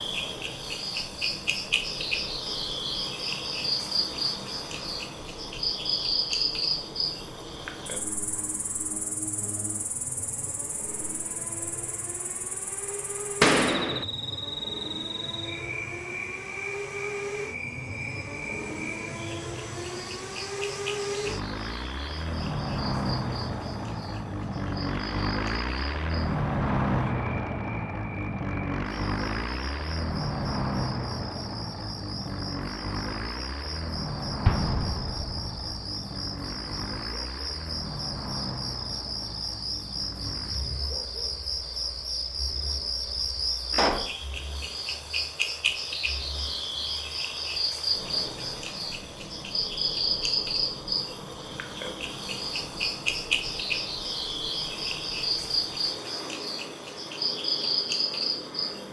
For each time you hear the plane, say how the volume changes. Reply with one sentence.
The plane can be heard from 0.0 to 58.8 s, getting louder then quieter.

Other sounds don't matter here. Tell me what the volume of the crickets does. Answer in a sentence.
The loudness of the crickets goes down, then up.